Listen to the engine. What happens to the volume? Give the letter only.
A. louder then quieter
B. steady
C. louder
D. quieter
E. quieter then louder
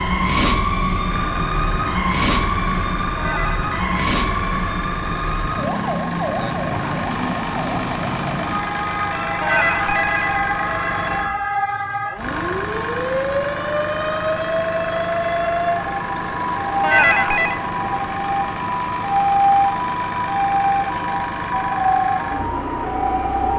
B.